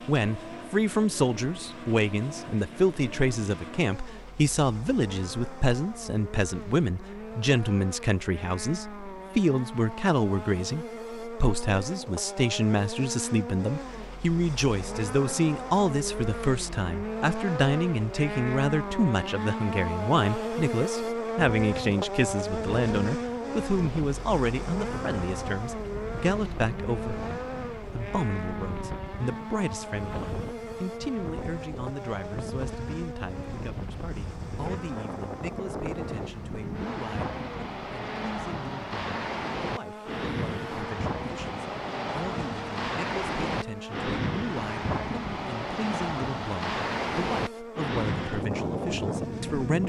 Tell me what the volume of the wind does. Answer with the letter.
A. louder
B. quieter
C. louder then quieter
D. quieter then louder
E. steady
A.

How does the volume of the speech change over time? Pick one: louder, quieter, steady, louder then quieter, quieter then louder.
quieter.